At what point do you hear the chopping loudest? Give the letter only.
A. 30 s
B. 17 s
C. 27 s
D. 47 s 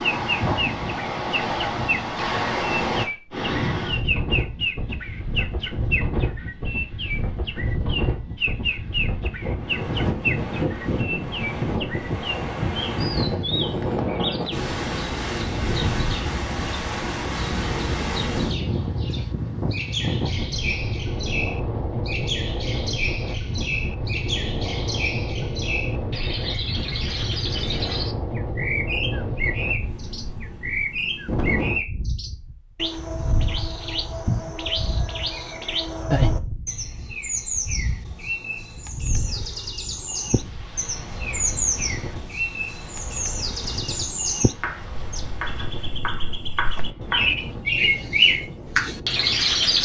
D.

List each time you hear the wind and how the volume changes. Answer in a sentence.
You can hear the wind from 0.0 to 49.8 s, getting quieter.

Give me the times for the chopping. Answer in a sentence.
The chopping can be heard from 44.6 to 47.3 s.